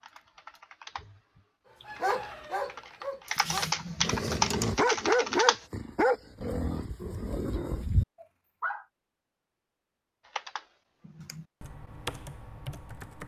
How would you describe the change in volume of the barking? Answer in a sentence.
The loudness of the barking goes up, then down.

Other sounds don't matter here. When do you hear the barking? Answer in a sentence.
The barking can be heard from 1.9 to 8.8 s.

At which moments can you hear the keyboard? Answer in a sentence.
The keyboard can be heard from 0.0 to 5.6 s and from 10.2 to 13.2 s.